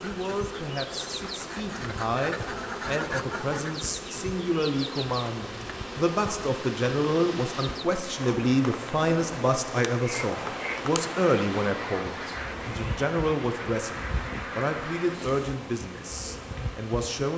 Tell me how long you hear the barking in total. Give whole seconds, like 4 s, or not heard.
not heard.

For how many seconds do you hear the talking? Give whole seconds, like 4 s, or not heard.
17 s.